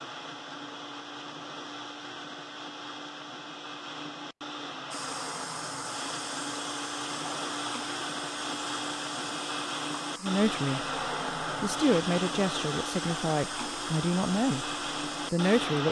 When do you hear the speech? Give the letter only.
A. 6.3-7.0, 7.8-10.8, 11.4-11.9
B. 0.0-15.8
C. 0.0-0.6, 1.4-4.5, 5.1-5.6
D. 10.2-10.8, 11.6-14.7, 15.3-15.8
D.